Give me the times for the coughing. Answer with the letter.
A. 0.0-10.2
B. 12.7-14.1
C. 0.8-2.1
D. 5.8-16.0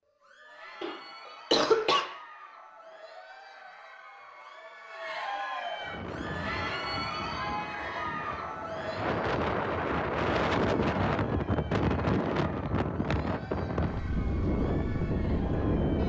C.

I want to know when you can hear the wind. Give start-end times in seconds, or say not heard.
5.8-16.0.